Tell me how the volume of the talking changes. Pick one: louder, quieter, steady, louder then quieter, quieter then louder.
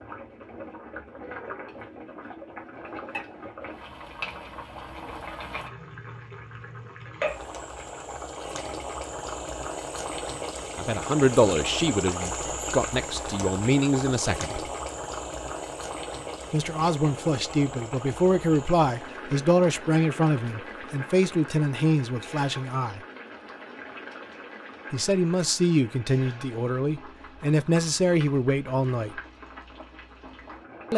steady.